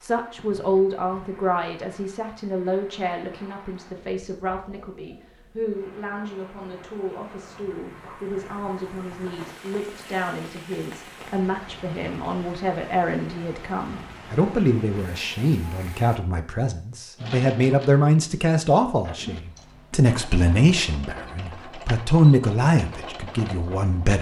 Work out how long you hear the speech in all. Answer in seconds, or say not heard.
24 s.